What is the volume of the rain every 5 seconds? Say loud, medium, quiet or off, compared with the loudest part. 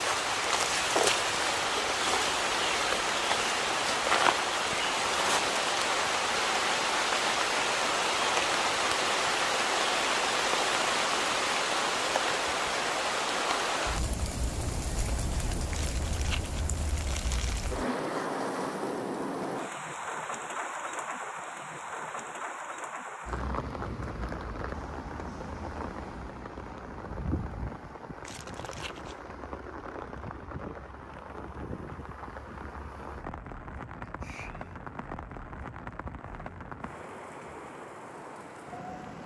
loud, loud, loud, medium, medium, quiet, quiet, quiet.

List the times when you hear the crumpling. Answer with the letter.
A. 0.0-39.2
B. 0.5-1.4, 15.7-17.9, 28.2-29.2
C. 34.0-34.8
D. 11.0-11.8
B.